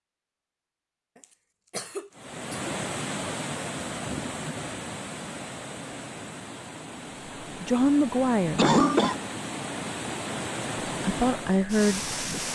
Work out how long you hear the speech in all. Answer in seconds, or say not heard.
3 s.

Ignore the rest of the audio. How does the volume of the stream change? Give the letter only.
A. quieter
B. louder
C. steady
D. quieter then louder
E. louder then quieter
D.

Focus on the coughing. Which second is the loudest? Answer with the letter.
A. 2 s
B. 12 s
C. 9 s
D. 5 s
C.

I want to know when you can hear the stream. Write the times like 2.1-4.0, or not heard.
2.1-12.5.